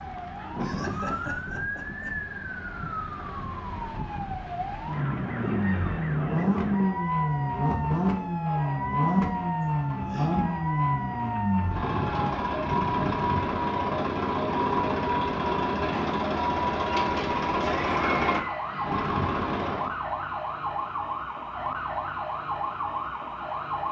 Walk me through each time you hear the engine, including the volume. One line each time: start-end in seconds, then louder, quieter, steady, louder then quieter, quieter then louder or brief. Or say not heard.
4.8-19.9 steady.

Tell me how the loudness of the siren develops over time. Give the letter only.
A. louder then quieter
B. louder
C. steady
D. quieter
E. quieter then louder
C.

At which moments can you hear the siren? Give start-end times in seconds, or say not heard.
0.0-23.8.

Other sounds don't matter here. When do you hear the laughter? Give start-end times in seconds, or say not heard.
0.6-2.1, 9.6-10.4, 17.6-18.9.